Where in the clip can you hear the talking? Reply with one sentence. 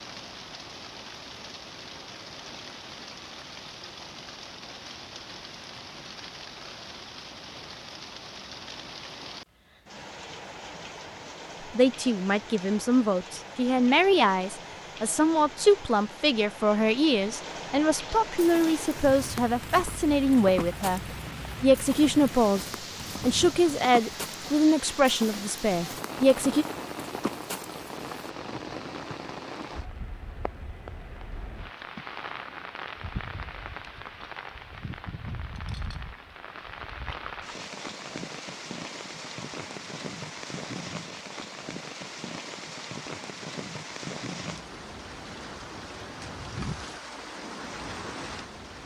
The talking can be heard from 11.7 to 21.0 s, from 21.6 to 22.6 s and from 23.2 to 26.6 s.